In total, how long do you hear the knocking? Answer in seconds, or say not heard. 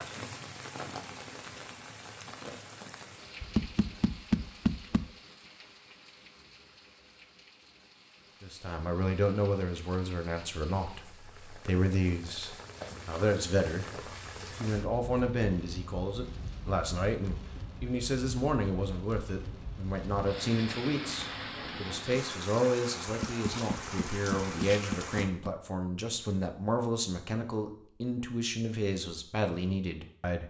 4 s.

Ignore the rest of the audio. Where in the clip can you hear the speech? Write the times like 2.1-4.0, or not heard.
8.4-13.8, 14.6-30.4.